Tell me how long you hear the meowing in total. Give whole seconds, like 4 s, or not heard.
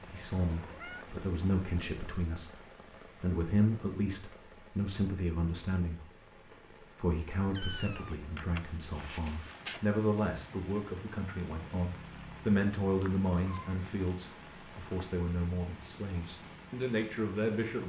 4 s.